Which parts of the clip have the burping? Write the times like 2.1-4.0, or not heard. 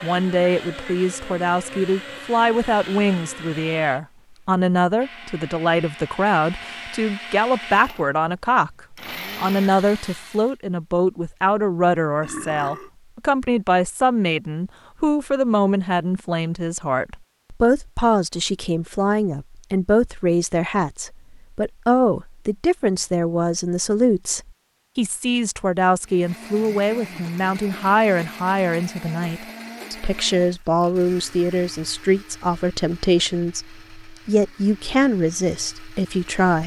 12.2-12.9.